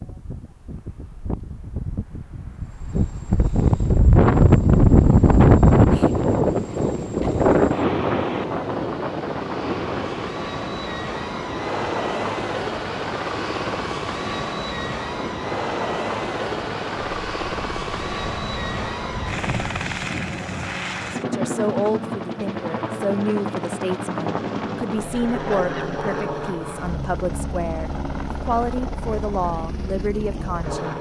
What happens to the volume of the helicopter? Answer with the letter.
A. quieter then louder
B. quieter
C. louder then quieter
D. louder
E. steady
D.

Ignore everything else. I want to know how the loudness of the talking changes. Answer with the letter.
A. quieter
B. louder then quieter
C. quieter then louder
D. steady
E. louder
D.